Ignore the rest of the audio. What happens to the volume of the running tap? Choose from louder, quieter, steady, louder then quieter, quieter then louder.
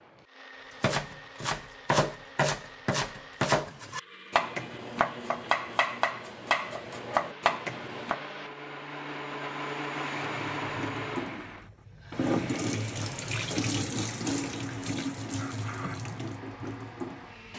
louder then quieter.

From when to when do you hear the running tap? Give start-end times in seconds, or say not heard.
10.3-17.5.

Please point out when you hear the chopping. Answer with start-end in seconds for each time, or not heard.
0.8-8.2.